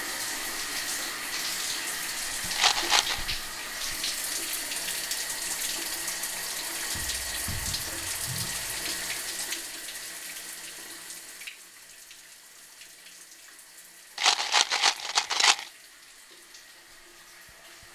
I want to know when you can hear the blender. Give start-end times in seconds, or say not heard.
not heard.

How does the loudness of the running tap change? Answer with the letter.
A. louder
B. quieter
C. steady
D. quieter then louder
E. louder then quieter
B.